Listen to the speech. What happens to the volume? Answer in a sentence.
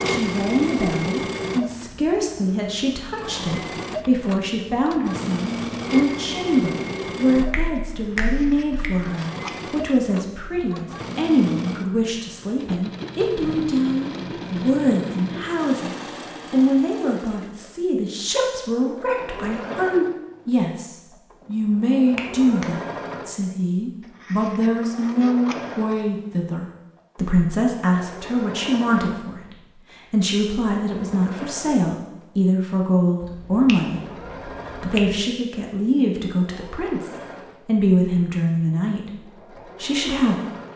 The volume of the speech stays about the same.